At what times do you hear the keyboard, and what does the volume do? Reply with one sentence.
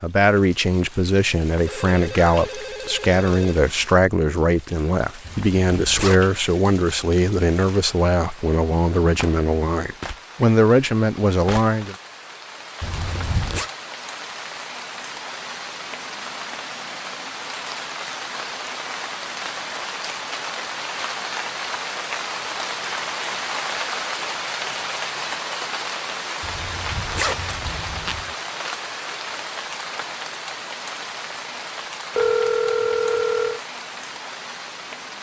The keyboard can't be heard in this clip.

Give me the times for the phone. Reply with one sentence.
The phone can be heard from 1.6 to 3.6 s and from 32.1 to 33.6 s.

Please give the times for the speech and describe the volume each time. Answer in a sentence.
The speech can be heard from 0.0 to 11.9 s, at a steady volume.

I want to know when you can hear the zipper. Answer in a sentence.
You can hear the zipper from 5.2 to 6.3 s, from 12.8 to 13.7 s and from 26.4 to 28.4 s.